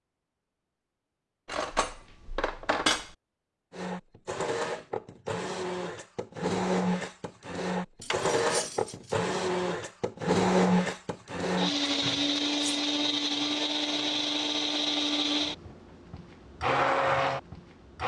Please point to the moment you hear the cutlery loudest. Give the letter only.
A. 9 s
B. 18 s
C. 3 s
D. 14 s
C.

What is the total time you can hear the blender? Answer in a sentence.
You can hear the blender for 14 seconds altogether.